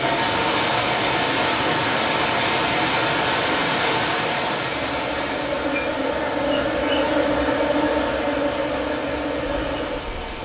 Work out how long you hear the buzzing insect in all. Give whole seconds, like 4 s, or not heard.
6 s.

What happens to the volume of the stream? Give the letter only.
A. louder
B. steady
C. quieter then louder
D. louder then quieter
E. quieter
E.